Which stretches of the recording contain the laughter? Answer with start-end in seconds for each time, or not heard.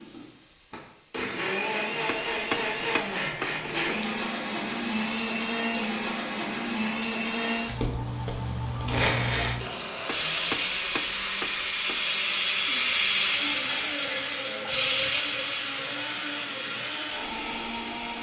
not heard.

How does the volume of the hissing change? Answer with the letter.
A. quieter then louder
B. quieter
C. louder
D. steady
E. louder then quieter
E.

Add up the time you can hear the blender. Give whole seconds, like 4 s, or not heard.
18 s.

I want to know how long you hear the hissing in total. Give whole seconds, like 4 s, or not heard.
14 s.